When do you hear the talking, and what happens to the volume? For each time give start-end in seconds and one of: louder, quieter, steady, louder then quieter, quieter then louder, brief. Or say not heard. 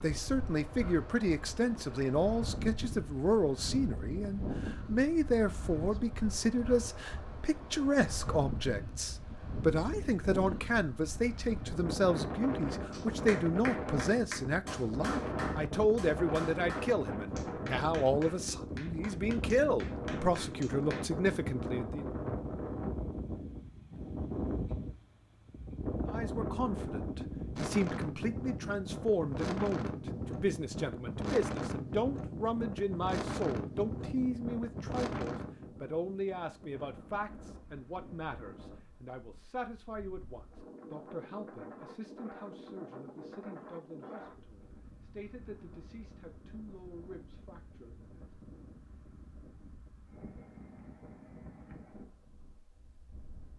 0.0-22.1 steady
26.1-48.1 quieter.